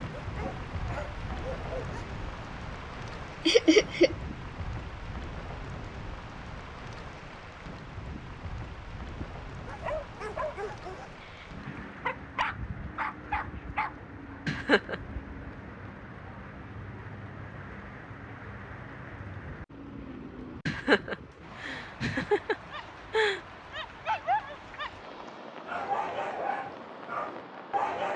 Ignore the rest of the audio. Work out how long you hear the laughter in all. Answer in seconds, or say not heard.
4 s.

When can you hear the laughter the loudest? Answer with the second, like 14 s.
4 s.